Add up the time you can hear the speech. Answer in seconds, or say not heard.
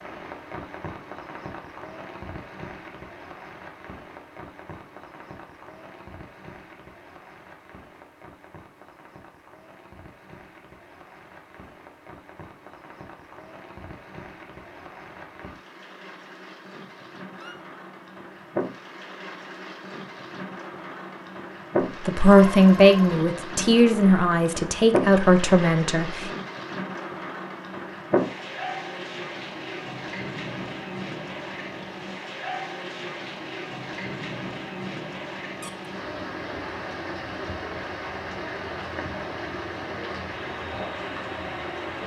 4 s.